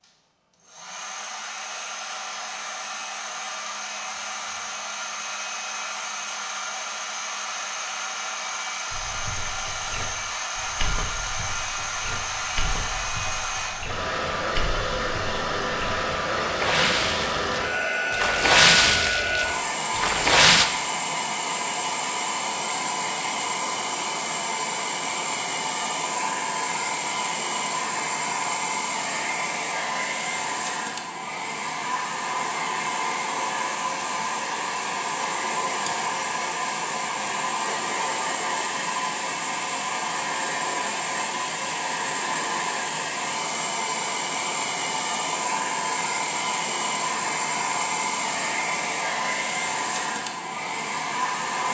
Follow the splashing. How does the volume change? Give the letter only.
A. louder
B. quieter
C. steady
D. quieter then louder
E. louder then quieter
A.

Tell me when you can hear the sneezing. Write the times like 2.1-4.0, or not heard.
not heard.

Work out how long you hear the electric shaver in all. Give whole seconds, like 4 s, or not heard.
not heard.